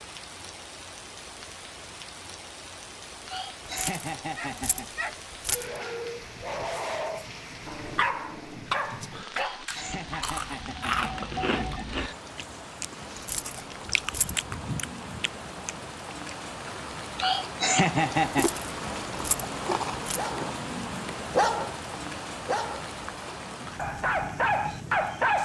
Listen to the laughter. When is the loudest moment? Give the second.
18 s.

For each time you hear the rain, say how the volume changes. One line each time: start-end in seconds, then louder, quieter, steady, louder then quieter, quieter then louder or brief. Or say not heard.
0.0-25.4 louder.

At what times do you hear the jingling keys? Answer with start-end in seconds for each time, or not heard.
3.6-5.7, 13.2-14.3, 18.2-20.2.